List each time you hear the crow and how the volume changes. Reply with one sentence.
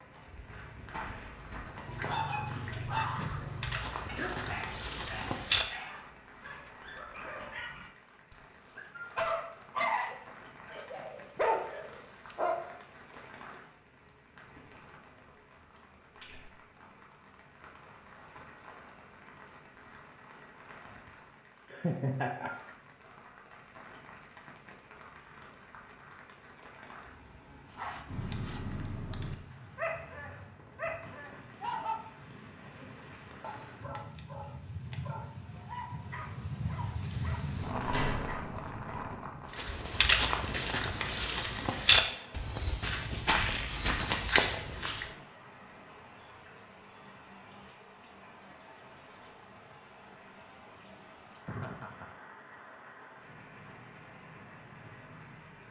You can't hear the crow here.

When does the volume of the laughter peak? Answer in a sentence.
The loudest moment of the laughter is at 22 seconds.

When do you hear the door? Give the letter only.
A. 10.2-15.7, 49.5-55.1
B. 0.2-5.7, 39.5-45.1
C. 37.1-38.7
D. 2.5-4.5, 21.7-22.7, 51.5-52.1
C.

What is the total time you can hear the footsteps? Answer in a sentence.
The footsteps can be heard for 11 seconds in total.